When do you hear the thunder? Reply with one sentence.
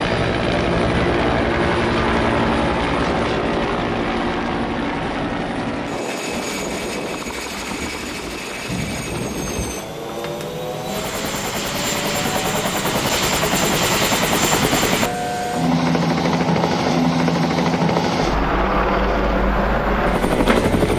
The thunder can be heard from 6.3 to 9.7 s.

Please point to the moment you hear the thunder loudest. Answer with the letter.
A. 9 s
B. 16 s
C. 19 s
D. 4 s
A.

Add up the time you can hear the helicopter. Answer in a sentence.
You can hear the helicopter for 21 seconds altogether.